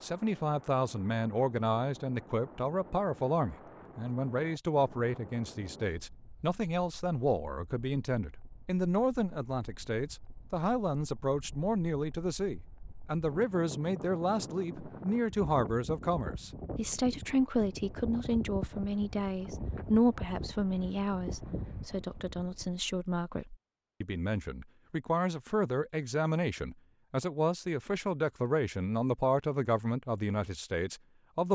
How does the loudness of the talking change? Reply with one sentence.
The loudness of the talking stays about the same.